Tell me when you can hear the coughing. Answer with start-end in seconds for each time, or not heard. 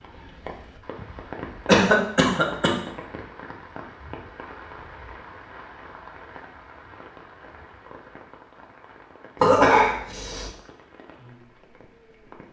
1.6-2.7, 9.4-10.5.